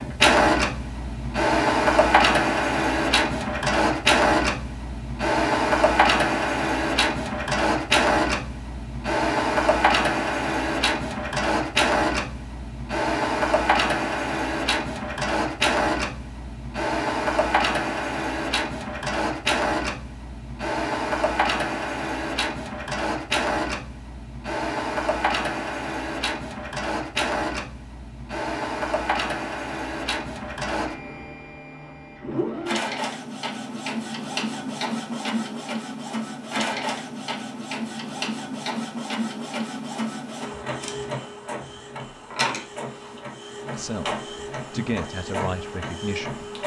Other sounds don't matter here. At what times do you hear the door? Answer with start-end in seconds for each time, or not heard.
not heard.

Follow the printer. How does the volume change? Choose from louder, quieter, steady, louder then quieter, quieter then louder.
quieter.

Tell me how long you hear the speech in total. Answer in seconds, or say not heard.
3 s.